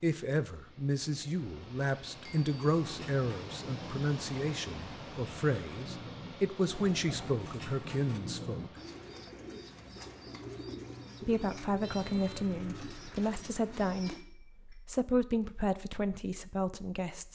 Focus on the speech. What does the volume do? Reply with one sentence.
The loudness of the speech stays about the same.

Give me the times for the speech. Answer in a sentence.
The speech can be heard from 0.0 to 8.7 s and from 11.2 to 17.2 s.